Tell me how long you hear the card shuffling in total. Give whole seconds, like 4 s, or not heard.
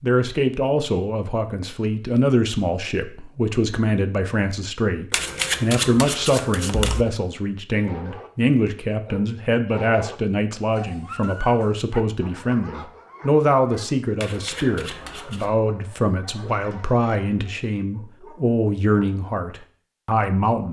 3 s.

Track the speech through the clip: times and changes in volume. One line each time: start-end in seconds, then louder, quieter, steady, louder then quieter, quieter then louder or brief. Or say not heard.
0.0-20.6 steady.